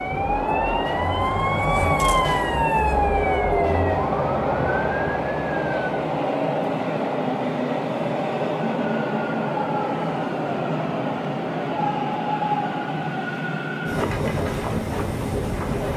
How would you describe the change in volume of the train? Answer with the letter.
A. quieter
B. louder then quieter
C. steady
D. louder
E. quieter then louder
C.